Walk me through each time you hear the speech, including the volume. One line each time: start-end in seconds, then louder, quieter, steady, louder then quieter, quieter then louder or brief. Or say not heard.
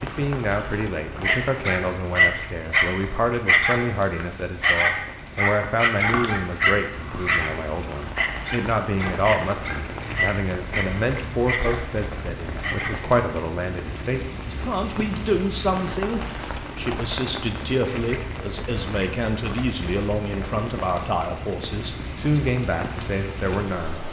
0.0-24.0 steady.